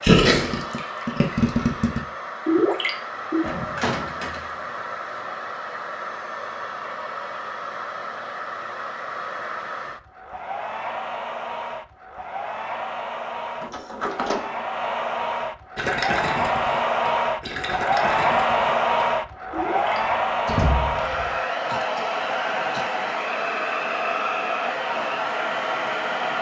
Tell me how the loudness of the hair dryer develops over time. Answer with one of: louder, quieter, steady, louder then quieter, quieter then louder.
louder.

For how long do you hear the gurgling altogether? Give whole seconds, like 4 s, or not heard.
8 s.